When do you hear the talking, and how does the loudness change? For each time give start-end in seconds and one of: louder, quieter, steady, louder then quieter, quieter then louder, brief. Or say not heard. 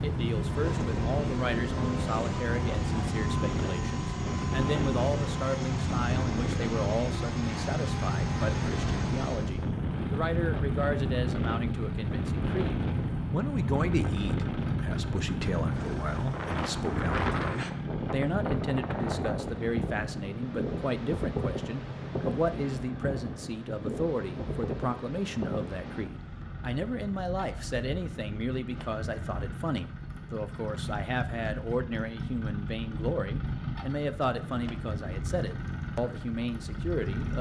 0.0-37.3 steady.